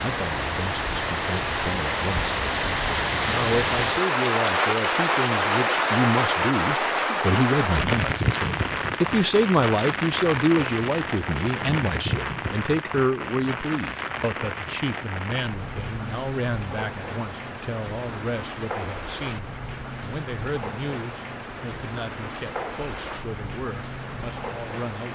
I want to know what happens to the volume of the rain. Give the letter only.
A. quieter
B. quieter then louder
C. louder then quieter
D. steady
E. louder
A.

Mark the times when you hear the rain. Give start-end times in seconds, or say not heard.
0.0-25.1.